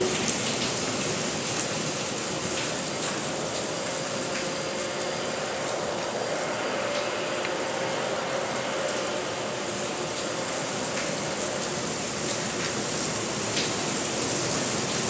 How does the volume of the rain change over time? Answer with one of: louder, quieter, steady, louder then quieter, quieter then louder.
quieter then louder.